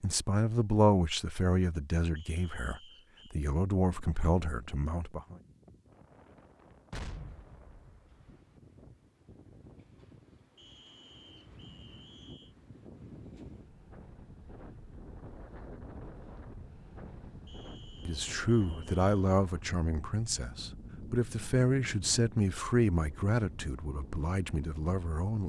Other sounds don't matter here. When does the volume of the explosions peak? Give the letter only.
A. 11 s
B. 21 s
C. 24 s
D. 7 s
D.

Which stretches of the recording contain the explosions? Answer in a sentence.
The explosions can be heard from 6.9 to 8.4 s.